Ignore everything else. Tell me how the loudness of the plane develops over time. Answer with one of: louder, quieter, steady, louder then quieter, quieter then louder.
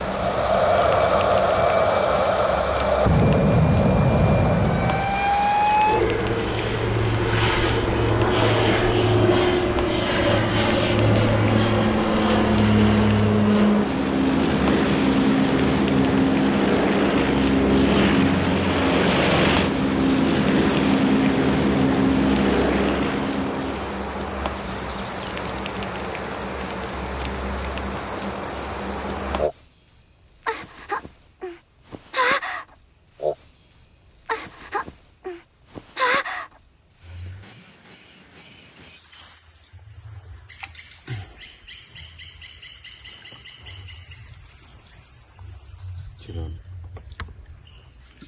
steady.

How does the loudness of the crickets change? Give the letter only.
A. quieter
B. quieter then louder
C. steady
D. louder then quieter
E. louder
C.